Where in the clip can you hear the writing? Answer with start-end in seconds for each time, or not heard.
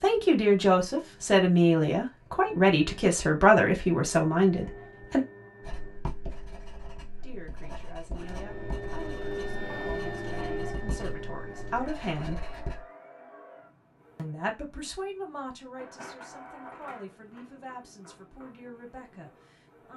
5.6-12.8.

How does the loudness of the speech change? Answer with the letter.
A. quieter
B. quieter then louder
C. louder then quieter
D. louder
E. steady
A.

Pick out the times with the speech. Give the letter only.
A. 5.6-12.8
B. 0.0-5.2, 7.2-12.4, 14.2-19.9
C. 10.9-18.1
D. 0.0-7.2
B.